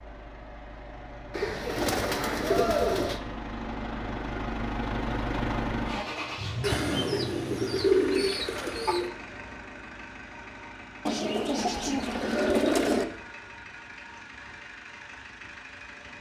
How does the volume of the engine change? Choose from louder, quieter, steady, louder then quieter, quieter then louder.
louder then quieter.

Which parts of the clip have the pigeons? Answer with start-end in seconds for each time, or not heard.
1.3-3.2, 6.6-9.1, 11.1-13.1.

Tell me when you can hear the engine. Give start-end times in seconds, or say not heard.
0.0-16.1.